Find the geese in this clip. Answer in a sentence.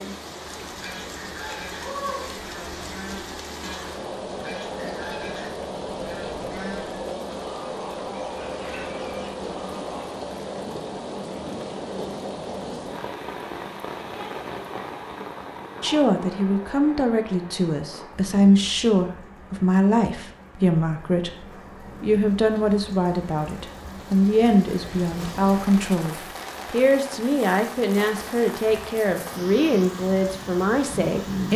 You can hear the geese from 0.6 to 10.2 s.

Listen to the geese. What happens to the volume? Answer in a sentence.
The volume of the geese stays about the same.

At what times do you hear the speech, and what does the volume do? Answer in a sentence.
The speech can be heard from 15.8 to 31.5 s, at a steady volume.